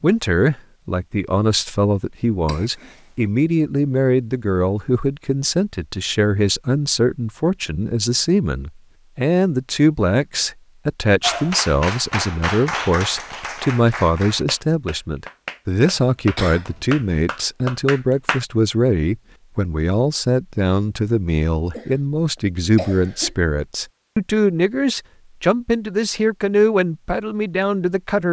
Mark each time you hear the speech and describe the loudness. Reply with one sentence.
The speech can be heard from 0.0 to 28.2 s, at a steady volume.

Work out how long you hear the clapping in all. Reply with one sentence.
You can hear the clapping for 7 seconds altogether.